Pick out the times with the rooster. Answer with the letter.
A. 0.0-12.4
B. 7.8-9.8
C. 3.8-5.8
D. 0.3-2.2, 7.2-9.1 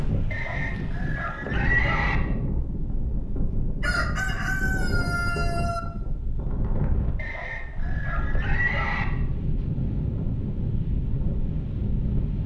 C.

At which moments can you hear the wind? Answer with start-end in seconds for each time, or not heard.
0.0-12.4.